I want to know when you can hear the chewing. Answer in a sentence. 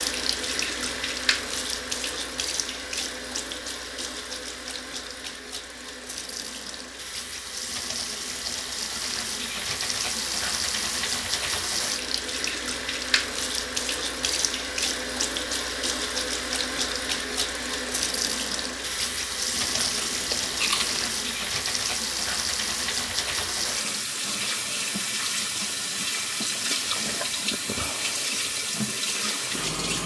The chewing can be heard from 19.6 to 21.1 s.